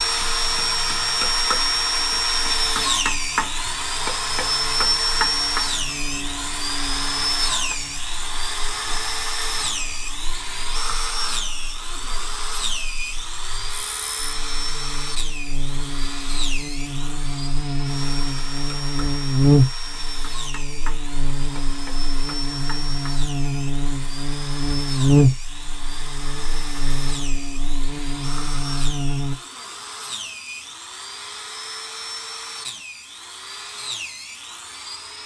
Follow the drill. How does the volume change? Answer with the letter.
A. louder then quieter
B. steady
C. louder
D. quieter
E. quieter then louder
D.